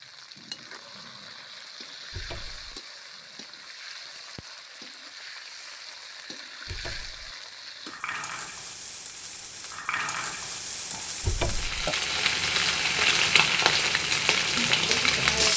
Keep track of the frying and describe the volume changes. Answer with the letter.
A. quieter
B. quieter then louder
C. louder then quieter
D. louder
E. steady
D.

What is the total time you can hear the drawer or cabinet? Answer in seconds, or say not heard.
2 s.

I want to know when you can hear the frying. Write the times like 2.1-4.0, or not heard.
0.0-15.5.